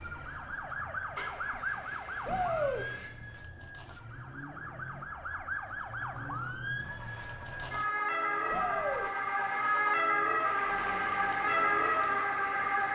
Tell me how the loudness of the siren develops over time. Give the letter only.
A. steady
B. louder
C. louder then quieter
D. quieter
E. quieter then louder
E.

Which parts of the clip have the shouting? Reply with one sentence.
You can hear the shouting from 2.2 to 2.9 s and from 8.4 to 9.1 s.